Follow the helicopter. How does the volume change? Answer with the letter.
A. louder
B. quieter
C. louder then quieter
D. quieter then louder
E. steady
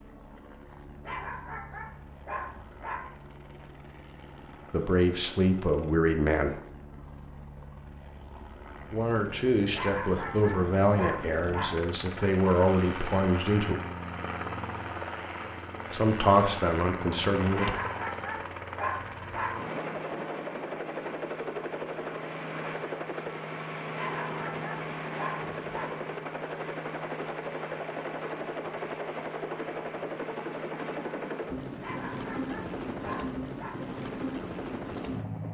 A.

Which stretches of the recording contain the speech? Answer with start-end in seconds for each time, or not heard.
4.7-6.6, 8.9-13.8, 15.9-17.6.